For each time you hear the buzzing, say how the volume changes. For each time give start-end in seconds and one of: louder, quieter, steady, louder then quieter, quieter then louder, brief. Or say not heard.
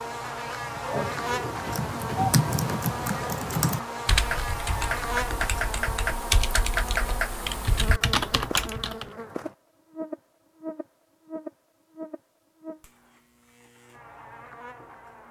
0.0-15.2 quieter.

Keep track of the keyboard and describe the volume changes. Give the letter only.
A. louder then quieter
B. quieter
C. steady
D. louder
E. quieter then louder
C.